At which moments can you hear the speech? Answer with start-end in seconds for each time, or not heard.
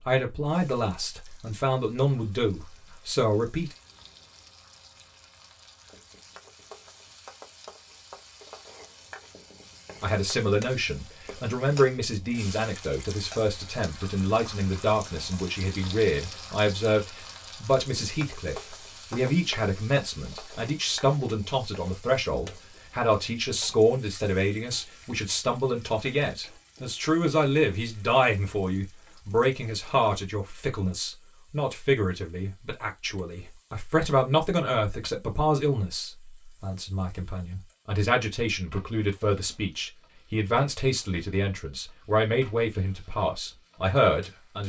0.1-3.7, 10.0-44.6.